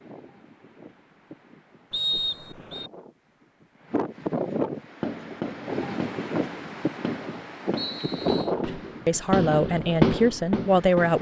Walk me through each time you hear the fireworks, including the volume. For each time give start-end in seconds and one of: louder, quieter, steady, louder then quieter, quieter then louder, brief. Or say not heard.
4.8-11.1 louder.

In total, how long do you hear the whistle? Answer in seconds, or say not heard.
2 s.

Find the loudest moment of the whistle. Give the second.
2 s.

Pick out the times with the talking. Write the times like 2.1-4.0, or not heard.
8.6-11.1.